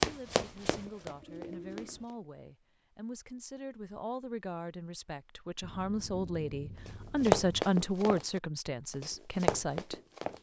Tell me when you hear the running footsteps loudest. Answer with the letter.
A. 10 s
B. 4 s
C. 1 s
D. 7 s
D.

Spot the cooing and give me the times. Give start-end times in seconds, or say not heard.
0.2-2.0.